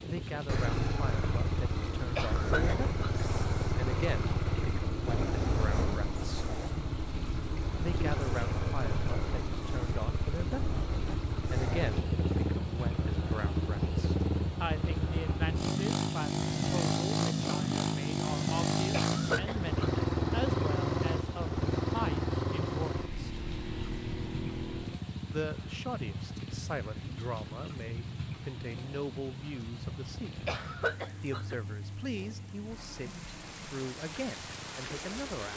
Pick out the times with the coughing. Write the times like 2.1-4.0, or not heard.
2.1-3.2, 18.9-20.1, 30.4-31.6.